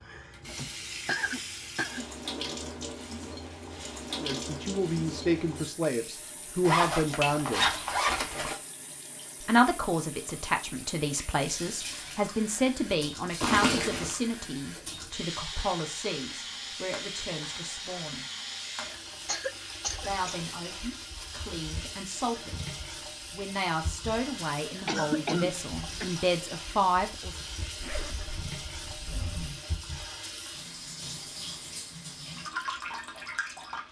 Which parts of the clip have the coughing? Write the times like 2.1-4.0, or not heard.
0.4-2.0, 19.2-20.4, 24.9-26.1.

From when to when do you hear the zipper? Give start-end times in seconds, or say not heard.
6.6-8.6, 13.4-14.2, 27.8-29.6.